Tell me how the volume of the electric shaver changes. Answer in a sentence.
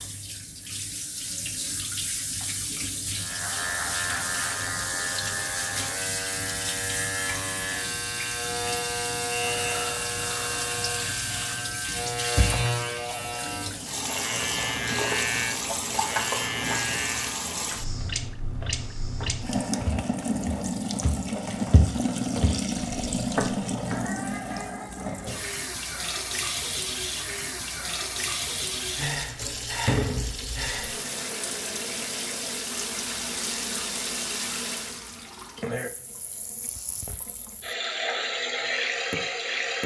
The loudness of the electric shaver stays about the same.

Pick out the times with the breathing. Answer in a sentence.
The breathing can be heard from 9.6 to 10.8 s, from 17.7 to 19.7 s and from 28.9 to 31.1 s.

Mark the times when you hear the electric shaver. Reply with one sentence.
The electric shaver can be heard from 3.1 to 17.4 s.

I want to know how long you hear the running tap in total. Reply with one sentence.
The running tap can be heard for 40 seconds in total.